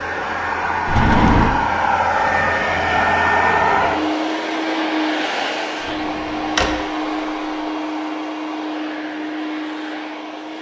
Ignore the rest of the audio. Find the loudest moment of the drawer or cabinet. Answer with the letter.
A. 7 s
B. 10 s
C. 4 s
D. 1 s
D.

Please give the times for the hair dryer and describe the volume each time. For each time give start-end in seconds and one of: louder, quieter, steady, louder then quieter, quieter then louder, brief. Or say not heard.
0.0-10.5 quieter.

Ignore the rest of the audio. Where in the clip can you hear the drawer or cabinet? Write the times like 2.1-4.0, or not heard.
0.8-1.6, 5.8-6.8.